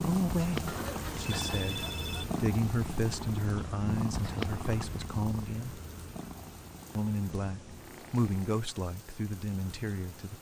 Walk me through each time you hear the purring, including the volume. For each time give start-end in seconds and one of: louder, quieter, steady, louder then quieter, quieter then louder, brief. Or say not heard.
0.0-8.5 quieter.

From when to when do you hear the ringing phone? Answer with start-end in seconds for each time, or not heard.
0.7-2.2.